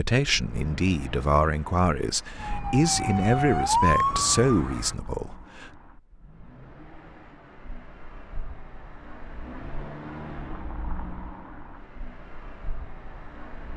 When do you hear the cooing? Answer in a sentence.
You can't hear the cooing here.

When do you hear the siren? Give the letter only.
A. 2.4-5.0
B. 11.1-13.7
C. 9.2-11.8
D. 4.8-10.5
A.